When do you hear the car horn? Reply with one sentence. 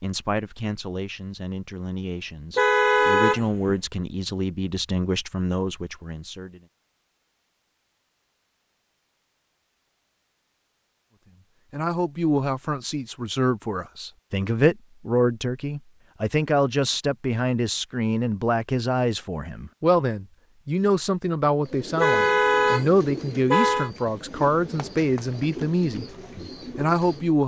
You can hear the car horn from 2.5 to 3.8 s and from 22.0 to 23.9 s.